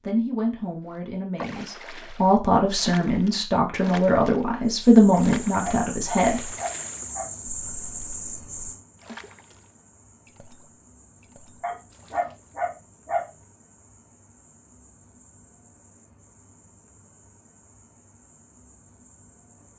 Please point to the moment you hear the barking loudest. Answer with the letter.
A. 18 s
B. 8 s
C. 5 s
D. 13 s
D.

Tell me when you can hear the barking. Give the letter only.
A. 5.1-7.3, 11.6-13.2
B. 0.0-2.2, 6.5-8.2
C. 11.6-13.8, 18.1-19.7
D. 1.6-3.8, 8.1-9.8
A.